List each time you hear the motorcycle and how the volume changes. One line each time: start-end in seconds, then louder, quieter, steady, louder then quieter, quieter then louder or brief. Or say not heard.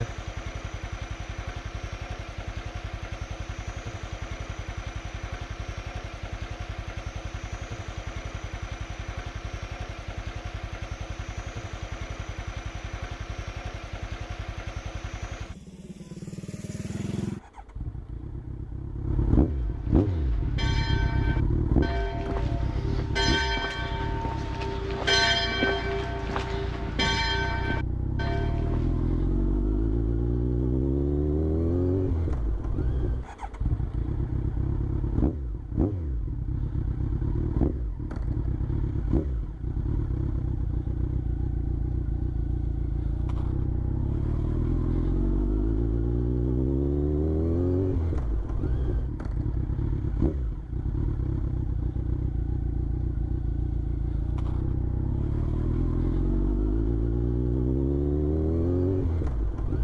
0.0-59.7 louder.